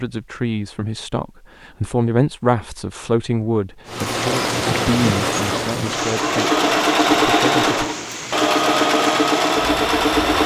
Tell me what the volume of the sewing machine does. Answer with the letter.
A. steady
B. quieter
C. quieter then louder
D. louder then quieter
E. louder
E.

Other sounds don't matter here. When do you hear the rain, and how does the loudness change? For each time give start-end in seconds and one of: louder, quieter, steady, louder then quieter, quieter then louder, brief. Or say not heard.
3.9-10.4 quieter.